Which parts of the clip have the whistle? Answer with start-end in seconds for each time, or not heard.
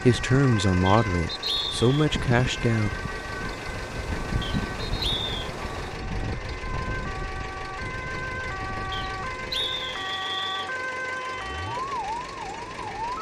0.8-2.0, 4.4-5.5, 8.9-10.7.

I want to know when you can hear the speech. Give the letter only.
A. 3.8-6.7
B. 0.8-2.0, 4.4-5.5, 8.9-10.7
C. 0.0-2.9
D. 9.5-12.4
C.